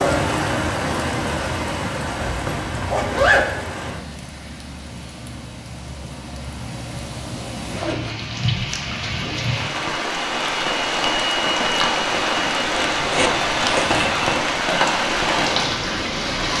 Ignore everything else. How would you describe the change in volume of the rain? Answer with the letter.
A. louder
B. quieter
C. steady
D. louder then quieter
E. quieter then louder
E.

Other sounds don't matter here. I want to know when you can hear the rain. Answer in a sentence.
You can hear the rain from 0.0 to 16.5 s.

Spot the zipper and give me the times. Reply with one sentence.
You can hear the zipper from 2.2 to 3.5 s, from 7.6 to 8.2 s and from 12.7 to 14.3 s.